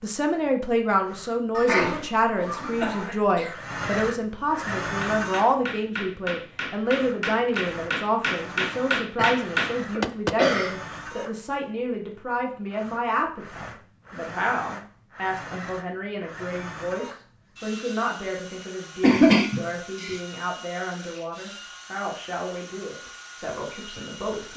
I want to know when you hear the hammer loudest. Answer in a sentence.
The loudest moment of the hammer is at 9 seconds.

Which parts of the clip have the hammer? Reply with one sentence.
You can hear the hammer from 4.8 to 10.6 s.